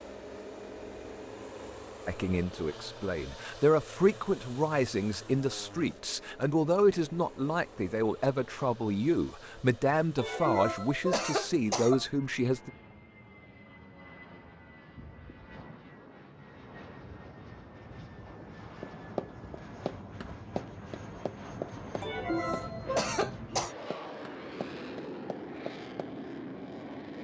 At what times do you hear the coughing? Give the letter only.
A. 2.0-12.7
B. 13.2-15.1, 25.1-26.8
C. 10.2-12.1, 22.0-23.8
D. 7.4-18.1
C.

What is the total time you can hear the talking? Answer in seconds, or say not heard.
11 s.